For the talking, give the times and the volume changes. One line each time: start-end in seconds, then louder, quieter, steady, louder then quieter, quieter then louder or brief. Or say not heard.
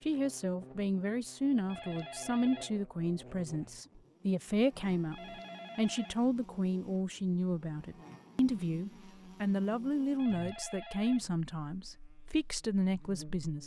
0.0-13.6 steady.